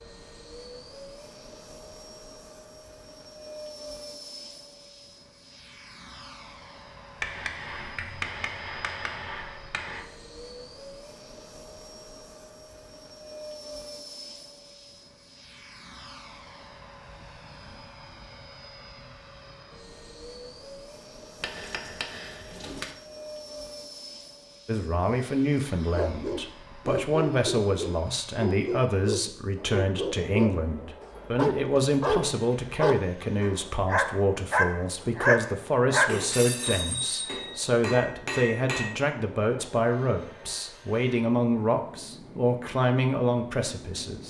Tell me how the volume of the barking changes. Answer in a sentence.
The loudness of the barking goes up.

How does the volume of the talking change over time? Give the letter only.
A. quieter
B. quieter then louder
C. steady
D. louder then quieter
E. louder
C.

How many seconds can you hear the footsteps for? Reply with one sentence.
You can't hear the footsteps here.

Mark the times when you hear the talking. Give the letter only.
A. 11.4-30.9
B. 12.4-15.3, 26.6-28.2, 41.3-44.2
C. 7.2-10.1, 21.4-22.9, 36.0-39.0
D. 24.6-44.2
D.